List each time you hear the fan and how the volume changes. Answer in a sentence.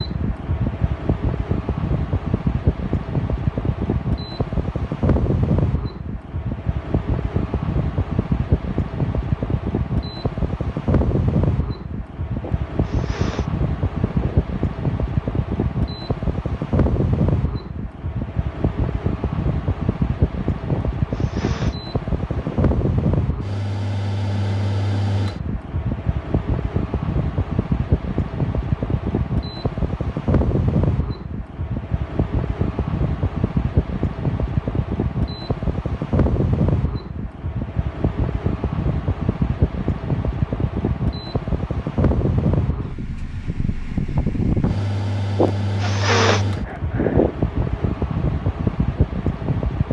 You can hear the fan from 0.0 to 49.8 s, at a steady volume.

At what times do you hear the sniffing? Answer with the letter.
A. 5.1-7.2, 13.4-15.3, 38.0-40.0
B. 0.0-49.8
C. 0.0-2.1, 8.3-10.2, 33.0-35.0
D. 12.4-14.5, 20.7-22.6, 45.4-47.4
D.